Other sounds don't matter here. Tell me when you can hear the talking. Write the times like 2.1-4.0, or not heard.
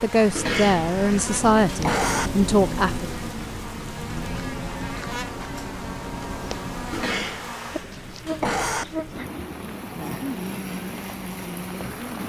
0.0-3.1.